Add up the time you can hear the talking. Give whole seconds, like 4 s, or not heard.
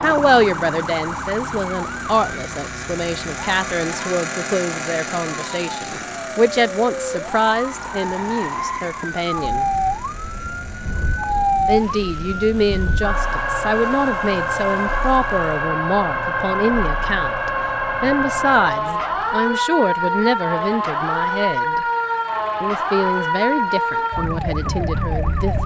23 s.